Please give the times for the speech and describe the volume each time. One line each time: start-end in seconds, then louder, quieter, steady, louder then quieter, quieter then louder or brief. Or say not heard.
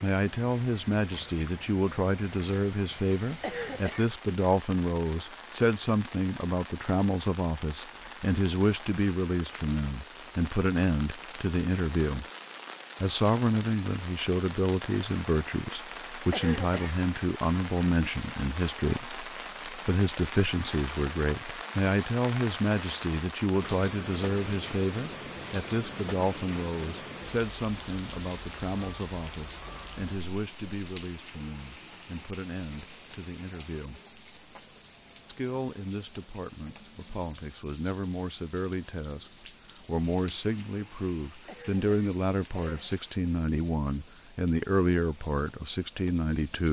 0.0-12.2 steady
13.0-34.0 quieter
35.2-46.6 louder.